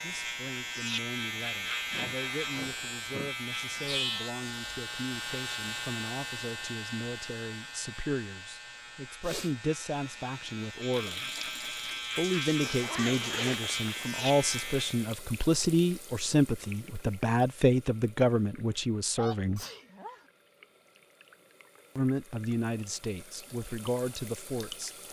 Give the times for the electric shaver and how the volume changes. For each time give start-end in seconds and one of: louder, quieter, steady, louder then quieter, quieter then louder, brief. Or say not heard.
0.0-15.1 quieter then louder.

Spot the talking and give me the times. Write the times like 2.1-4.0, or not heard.
0.0-11.4, 12.2-19.6, 21.9-25.0.